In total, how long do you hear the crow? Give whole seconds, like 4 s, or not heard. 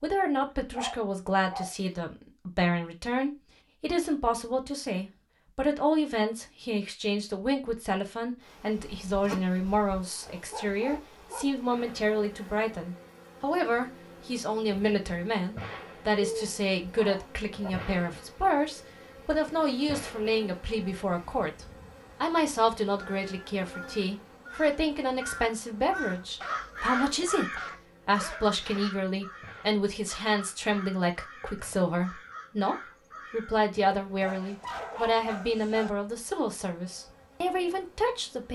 12 s.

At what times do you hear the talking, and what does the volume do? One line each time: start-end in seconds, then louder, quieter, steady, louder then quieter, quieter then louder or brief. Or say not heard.
0.0-38.5 steady.